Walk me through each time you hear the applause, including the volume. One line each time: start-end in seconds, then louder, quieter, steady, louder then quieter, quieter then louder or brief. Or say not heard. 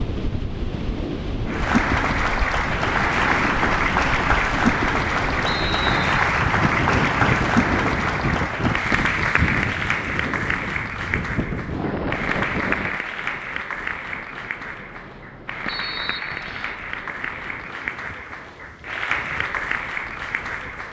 1.4-20.8 quieter.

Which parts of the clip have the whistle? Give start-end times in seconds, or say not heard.
5.5-6.0, 15.7-16.8.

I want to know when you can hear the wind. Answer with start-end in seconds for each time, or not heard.
0.0-20.8.